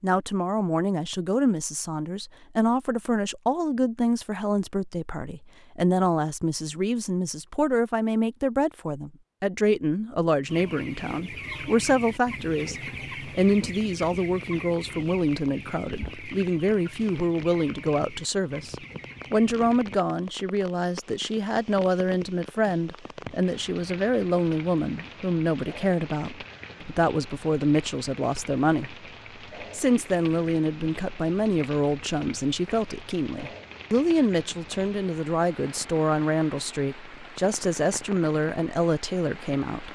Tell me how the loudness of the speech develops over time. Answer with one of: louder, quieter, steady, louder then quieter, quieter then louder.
steady.